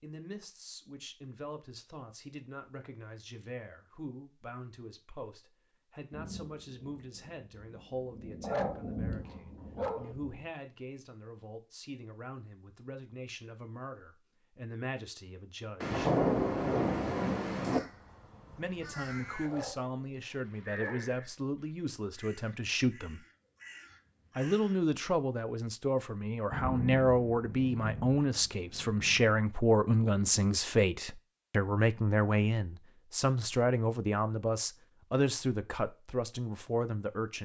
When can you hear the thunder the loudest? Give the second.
16 s.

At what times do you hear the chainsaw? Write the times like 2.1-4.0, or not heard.
not heard.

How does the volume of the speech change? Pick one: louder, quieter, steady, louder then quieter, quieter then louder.
louder.